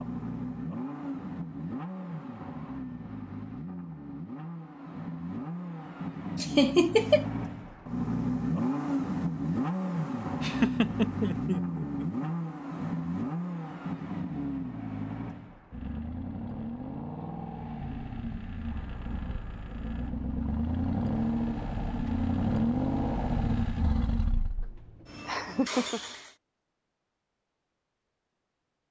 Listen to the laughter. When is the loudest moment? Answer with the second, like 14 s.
7 s.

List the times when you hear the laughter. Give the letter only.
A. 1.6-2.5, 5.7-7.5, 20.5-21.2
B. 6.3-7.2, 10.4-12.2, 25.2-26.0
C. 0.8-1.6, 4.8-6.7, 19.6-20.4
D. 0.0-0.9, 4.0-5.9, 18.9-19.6
B.